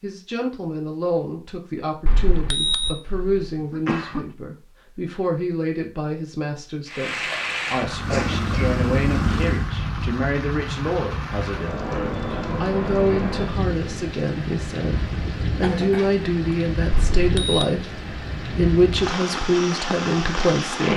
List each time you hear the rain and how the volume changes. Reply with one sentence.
The rain can be heard from 6.8 to 20.9 s, at a steady volume.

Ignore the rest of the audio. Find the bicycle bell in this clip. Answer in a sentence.
The bicycle bell can be heard from 2.0 to 3.0 s and from 16.9 to 17.6 s.